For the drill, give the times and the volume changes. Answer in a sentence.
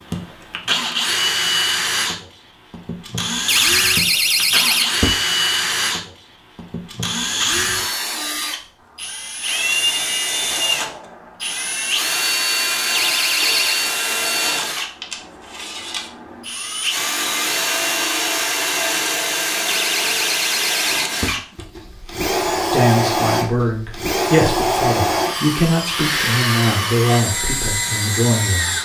You can hear the drill from 0.0 to 28.7 s, at a steady volume.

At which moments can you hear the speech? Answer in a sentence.
You can hear the speech from 22.7 to 28.7 s.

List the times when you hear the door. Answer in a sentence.
The door can be heard from 3.5 to 5.2 s, from 12.9 to 13.8 s and from 19.6 to 21.4 s.